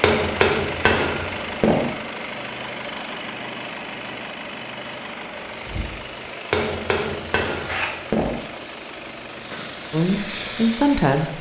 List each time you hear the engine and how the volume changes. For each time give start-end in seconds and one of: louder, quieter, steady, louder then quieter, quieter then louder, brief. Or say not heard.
0.0-11.3 quieter.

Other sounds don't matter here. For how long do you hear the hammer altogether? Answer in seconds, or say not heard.
4 s.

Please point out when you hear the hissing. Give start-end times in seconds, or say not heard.
5.3-11.3.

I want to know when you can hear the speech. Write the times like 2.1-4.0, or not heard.
9.9-11.3.